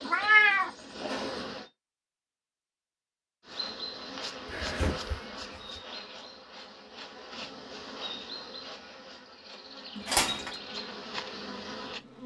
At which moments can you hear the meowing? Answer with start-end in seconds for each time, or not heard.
0.1-1.4, 4.5-5.8, 9.9-10.5.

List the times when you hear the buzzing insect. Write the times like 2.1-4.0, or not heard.
0.0-1.7, 3.5-12.2.